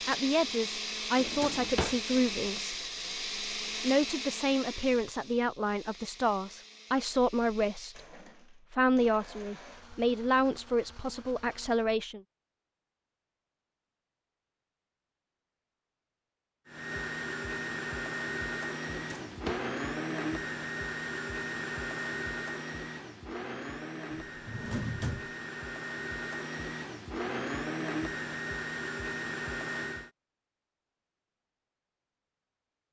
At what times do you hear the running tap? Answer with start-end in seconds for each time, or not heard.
not heard.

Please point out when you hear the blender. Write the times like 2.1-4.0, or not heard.
0.0-11.9, 16.6-30.1.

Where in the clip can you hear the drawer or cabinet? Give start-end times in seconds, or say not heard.
1.1-2.0, 18.9-19.7, 24.4-25.3.